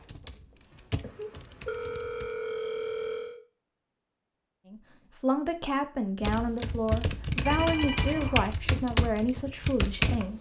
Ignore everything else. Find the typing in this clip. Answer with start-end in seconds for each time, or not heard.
0.0-2.3, 6.2-10.3.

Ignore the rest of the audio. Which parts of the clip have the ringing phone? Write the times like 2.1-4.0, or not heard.
1.0-3.4, 7.5-8.4.